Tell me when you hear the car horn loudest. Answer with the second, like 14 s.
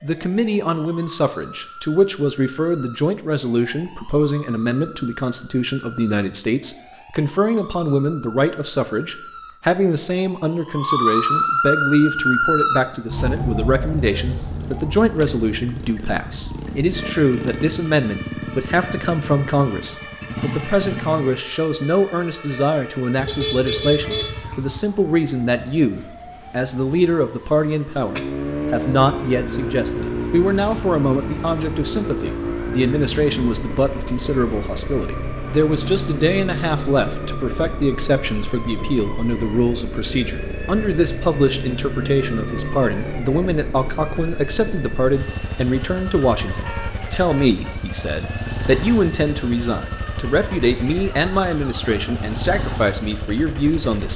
24 s.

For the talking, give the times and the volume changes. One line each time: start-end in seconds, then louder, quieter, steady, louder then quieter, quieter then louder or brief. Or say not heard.
0.0-54.1 steady.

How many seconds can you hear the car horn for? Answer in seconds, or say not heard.
3 s.